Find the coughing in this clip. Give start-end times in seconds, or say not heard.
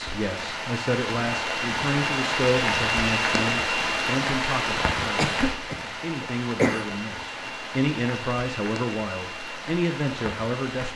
5.2-6.9.